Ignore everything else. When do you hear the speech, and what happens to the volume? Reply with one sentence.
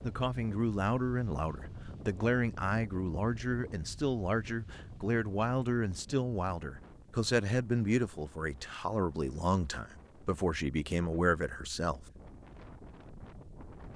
The speech can be heard from 0.0 to 12.1 s, at a steady volume.